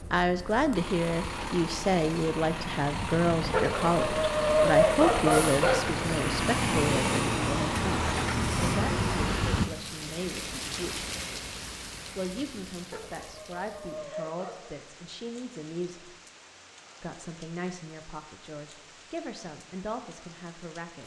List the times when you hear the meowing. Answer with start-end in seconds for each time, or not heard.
not heard.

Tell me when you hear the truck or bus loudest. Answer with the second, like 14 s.
7 s.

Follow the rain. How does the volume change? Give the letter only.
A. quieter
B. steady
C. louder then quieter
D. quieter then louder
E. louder
A.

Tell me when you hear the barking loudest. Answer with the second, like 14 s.
5 s.